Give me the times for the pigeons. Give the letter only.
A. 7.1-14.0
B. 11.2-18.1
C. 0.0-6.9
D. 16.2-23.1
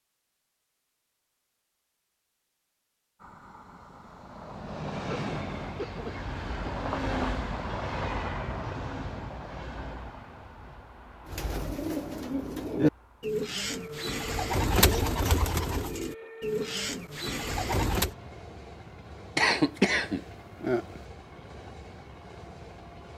B.